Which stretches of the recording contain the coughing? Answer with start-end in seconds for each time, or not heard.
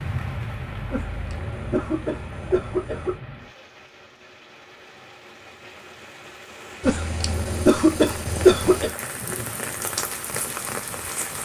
0.9-3.1, 6.8-8.9.